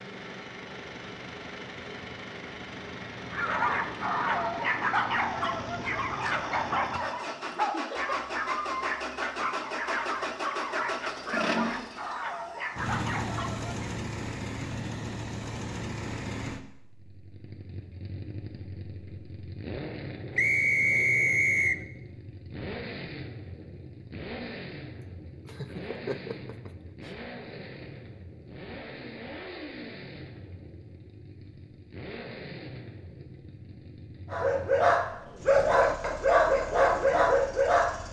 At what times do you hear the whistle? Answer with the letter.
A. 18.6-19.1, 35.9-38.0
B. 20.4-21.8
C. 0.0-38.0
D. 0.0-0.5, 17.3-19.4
B.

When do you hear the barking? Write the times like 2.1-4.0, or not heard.
3.3-13.8, 34.3-38.0.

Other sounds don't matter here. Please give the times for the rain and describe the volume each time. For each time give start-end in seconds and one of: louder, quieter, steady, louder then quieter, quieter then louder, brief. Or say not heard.
not heard.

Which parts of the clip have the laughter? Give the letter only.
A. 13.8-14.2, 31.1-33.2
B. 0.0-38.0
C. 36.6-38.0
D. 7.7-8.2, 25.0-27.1
D.